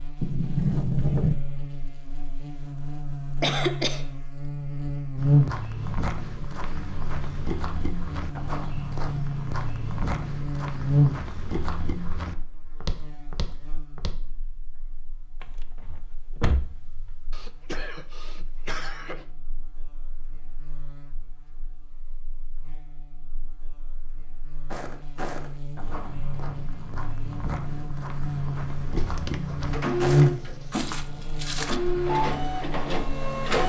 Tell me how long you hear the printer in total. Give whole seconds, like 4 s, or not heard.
4 s.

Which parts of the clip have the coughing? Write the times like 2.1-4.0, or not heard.
3.4-4.0, 17.3-19.2.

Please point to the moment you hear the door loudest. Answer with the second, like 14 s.
1 s.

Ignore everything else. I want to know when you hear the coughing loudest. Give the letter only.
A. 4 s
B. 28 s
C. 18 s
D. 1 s
A.